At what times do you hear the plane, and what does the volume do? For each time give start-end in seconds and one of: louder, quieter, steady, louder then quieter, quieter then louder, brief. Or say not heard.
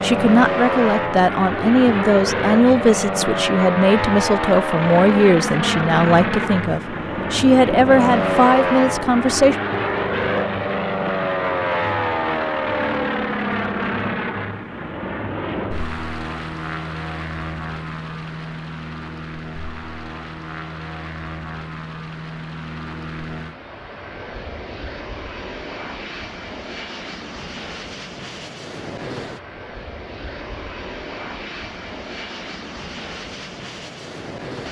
0.0-34.6 quieter.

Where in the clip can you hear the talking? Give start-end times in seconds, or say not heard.
0.0-9.6.